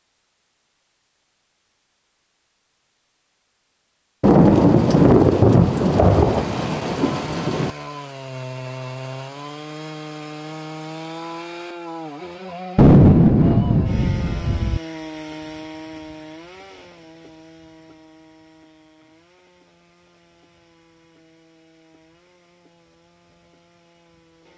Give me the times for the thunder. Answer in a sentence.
The thunder can be heard from 4.2 to 7.7 s and from 12.8 to 14.8 s.